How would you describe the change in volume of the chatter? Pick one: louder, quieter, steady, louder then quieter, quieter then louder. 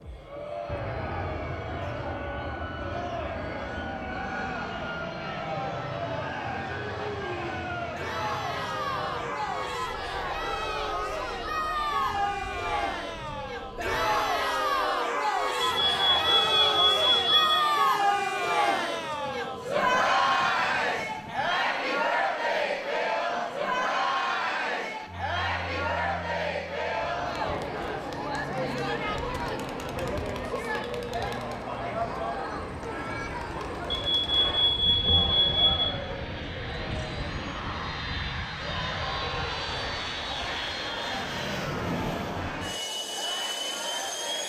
louder then quieter.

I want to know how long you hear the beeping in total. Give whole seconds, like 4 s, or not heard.
4 s.